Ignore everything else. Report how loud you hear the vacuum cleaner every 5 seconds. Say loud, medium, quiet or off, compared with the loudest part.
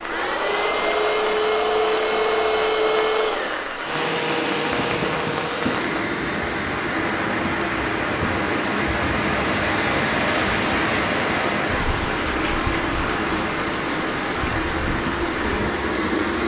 loud, medium, medium, loud.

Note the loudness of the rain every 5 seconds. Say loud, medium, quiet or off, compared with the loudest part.
medium, loud, loud, medium.